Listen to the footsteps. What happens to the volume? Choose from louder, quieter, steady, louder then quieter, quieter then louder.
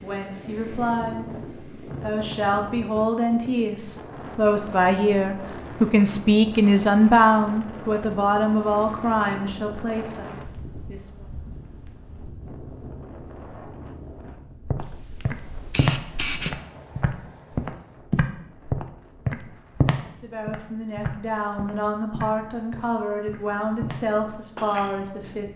quieter.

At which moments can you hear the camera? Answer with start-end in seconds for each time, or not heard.
14.8-16.6.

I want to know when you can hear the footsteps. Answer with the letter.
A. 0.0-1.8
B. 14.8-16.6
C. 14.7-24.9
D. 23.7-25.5
C.